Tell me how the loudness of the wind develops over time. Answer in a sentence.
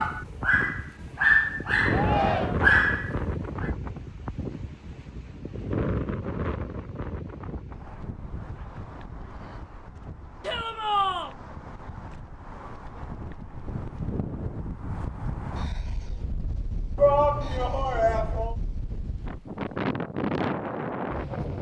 The loudness of the wind goes down, then up.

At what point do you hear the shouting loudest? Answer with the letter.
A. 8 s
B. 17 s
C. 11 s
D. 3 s
B.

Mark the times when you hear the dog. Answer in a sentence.
The dog can be heard from 0.0 to 3.7 s.